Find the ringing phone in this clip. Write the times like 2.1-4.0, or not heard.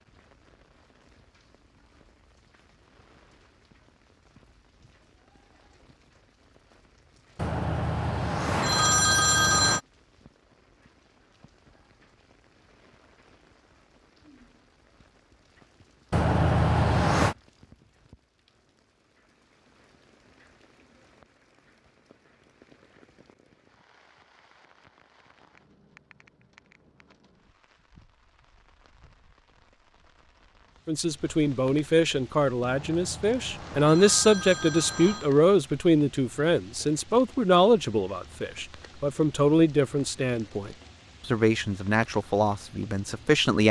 7.3-9.8, 16.1-17.4, 32.6-35.3.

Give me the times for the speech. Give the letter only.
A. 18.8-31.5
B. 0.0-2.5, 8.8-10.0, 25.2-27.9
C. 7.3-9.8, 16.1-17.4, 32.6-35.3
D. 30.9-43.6
D.